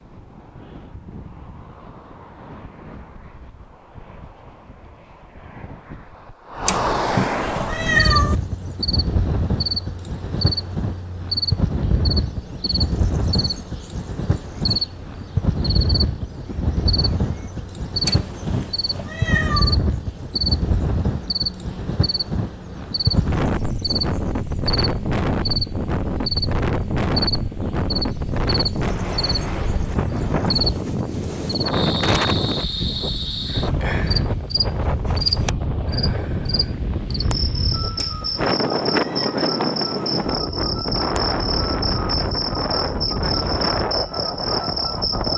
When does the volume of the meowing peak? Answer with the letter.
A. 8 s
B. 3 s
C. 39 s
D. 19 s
A.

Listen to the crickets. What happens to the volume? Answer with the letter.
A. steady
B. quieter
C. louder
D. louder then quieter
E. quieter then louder
A.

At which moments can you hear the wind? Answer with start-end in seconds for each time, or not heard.
0.0-45.3.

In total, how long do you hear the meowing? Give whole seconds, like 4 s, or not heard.
5 s.